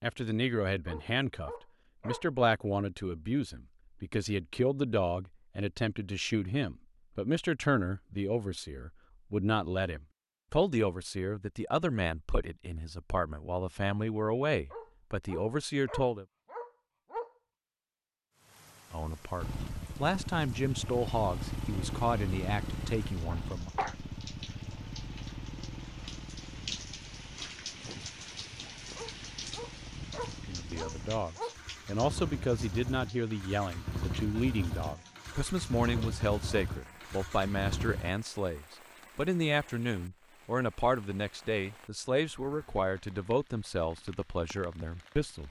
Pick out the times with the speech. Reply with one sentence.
The speech can be heard from 0.0 to 16.2 s, from 18.9 to 23.7 s and from 30.4 to 45.4 s.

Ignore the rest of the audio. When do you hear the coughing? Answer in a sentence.
The coughing can be heard from 23.3 to 23.9 s.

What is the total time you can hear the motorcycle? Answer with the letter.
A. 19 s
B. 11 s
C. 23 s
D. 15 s
A.